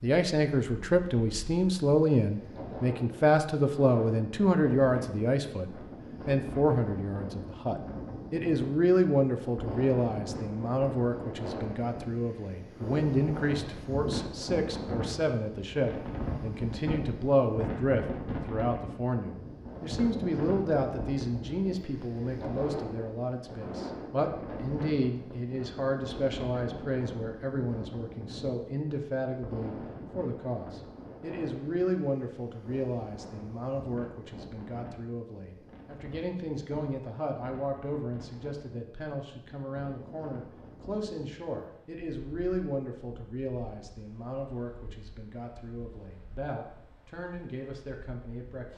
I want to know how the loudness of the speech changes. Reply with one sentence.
The volume of the speech goes down.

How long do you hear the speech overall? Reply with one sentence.
The speech can be heard for 49 seconds in total.